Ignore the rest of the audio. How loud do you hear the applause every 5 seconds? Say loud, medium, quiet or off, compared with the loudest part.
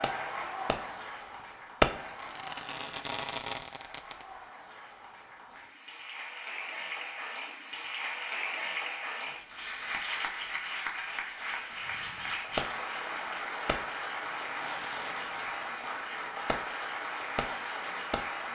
medium, loud, loud, loud.